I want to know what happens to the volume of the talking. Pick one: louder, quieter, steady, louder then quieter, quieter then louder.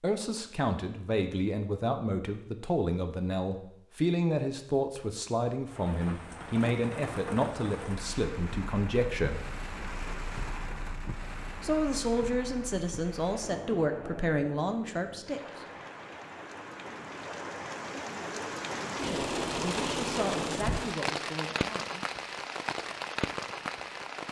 quieter.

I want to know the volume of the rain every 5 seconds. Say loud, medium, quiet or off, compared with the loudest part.
off, medium, medium, loud, loud.